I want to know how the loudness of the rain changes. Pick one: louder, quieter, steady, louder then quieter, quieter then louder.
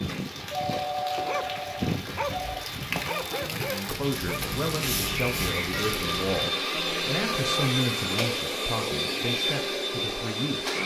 louder.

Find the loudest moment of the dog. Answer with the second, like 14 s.
2 s.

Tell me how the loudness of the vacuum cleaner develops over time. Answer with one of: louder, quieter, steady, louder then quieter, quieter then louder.
louder.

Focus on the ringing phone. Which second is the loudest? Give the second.
1 s.